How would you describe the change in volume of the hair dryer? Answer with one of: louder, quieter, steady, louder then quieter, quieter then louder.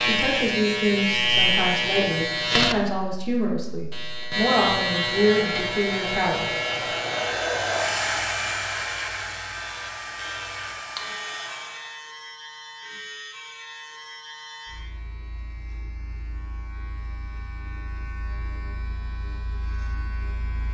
louder then quieter.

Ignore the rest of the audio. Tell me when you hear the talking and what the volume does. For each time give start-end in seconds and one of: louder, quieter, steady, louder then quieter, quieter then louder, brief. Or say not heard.
0.0-6.5 steady.